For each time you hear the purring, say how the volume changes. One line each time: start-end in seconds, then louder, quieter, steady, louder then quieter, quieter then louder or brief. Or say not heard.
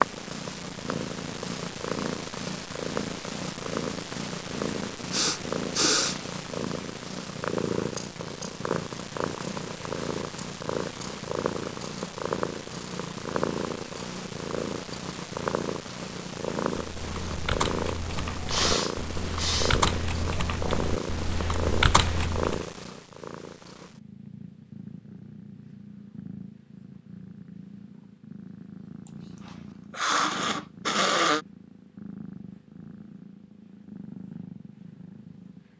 0.0-35.7 quieter.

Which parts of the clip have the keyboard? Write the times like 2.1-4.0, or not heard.
16.9-22.6.